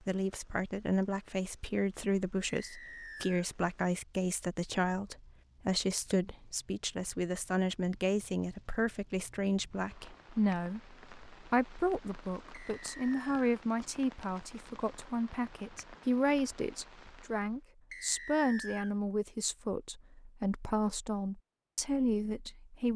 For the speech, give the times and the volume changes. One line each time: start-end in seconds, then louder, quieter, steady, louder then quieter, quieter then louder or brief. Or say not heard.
0.1-22.9 steady.